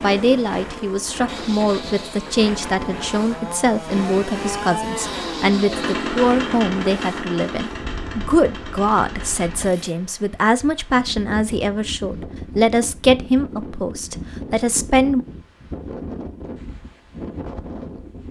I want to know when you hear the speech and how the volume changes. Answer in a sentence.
The speech can be heard from 0.0 to 15.2 s, at a steady volume.